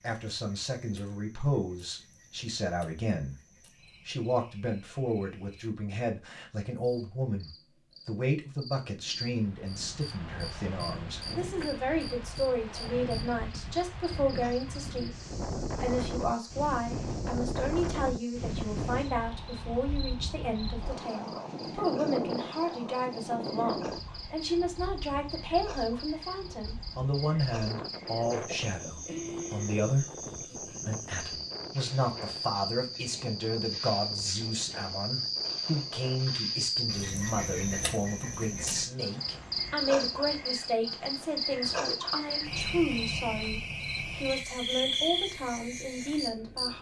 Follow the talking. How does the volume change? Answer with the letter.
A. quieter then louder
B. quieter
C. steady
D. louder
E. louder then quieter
C.